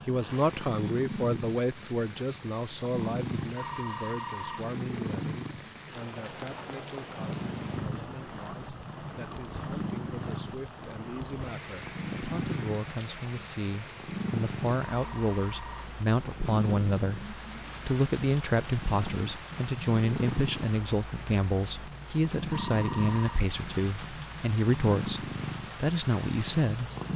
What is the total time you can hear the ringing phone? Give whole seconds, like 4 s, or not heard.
3 s.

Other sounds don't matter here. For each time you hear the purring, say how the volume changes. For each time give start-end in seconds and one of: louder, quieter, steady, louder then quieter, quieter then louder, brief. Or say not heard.
0.0-27.1 steady.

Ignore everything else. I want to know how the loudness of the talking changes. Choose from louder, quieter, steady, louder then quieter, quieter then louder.
quieter then louder.